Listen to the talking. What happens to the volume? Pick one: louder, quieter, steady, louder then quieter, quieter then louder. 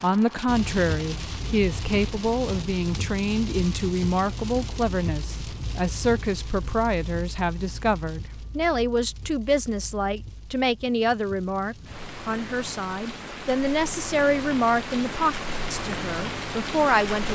steady.